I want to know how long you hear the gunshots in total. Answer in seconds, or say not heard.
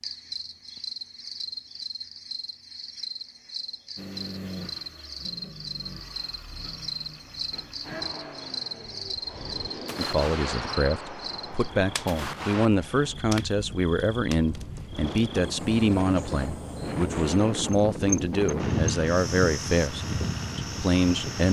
3 s.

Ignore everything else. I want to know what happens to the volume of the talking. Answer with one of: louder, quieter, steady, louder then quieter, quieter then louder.
steady.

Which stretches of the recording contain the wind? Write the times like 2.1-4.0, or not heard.
7.8-21.4.